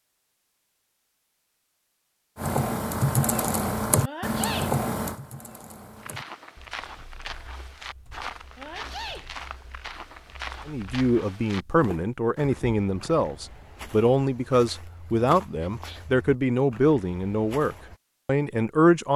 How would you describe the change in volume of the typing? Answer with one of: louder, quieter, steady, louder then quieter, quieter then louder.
quieter.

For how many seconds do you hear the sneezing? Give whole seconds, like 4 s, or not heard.
2 s.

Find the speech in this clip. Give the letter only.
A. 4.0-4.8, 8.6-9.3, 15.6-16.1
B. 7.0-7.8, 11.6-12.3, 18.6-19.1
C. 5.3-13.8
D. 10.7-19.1
D.